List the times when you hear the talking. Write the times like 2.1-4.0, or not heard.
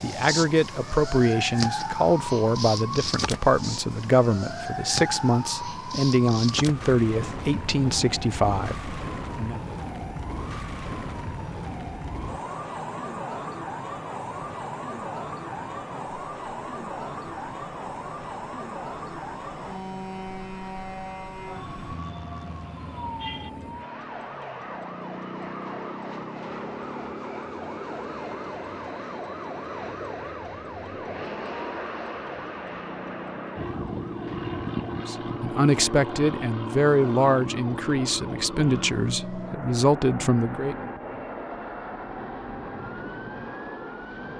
0.0-9.6, 35.0-40.9.